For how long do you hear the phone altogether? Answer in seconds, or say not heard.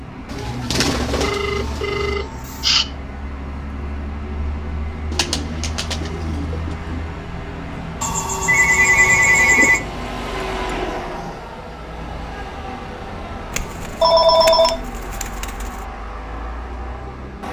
4 s.